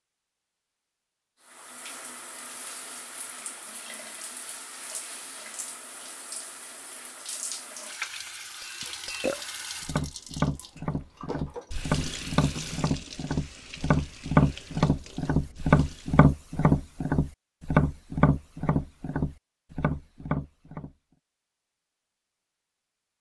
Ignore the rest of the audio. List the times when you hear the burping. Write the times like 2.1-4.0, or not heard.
8.8-9.4.